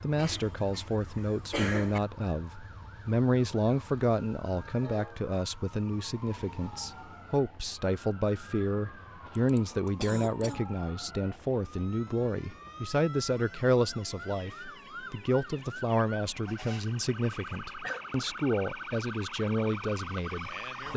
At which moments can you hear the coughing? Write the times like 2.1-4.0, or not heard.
0.1-2.0, 9.3-10.7, 17.3-18.1.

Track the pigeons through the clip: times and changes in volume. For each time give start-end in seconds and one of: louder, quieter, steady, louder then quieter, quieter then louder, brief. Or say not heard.
not heard.